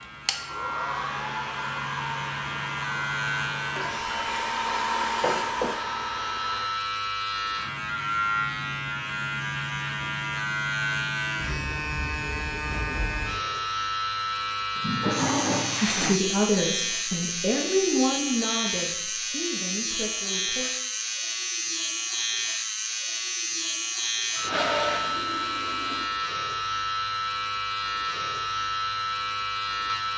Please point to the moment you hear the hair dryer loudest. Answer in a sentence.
The volume of the hair dryer peaks at 5 seconds.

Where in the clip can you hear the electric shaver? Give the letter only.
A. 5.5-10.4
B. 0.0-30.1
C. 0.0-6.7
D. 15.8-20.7
B.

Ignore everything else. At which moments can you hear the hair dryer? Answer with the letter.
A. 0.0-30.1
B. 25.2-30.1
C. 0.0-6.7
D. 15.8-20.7
C.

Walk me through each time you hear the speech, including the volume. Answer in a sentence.
You can hear the speech from 15.8 to 20.7 s, getting quieter.